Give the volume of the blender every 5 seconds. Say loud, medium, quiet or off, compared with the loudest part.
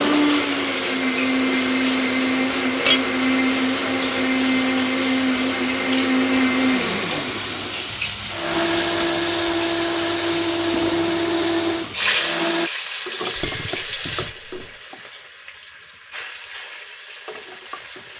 loud, loud, loud, off.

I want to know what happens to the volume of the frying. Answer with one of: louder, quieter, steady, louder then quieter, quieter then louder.
quieter.